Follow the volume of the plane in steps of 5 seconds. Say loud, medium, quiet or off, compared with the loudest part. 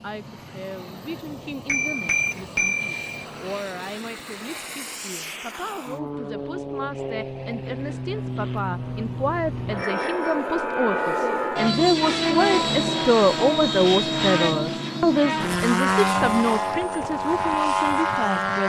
quiet, medium, loud, loud.